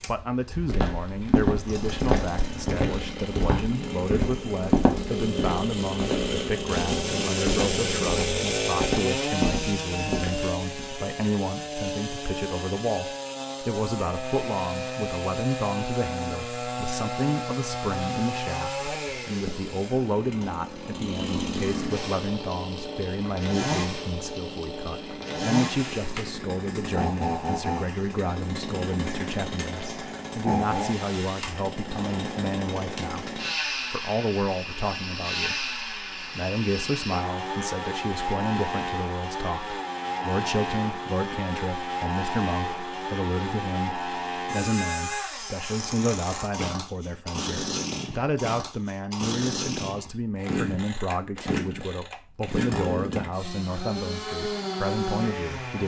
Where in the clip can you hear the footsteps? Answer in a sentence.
The footsteps can be heard from 0.7 to 10.9 s.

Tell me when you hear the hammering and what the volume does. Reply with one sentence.
You can't hear the hammering here.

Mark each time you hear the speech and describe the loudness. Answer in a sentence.
You can hear the speech from 0.1 to 55.8 s, at a steady volume.